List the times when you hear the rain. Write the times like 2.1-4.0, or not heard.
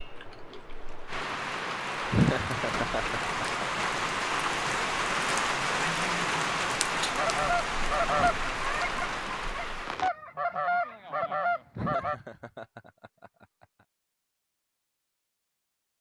0.0-10.1.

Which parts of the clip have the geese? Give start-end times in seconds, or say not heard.
7.0-12.2.